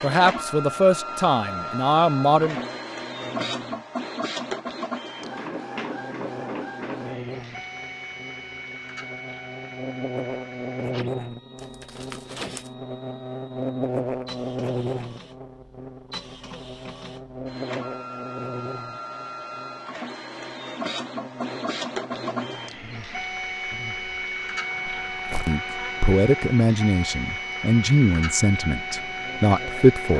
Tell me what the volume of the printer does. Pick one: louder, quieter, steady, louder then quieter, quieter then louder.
quieter then louder.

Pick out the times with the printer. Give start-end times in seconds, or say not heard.
0.0-30.1.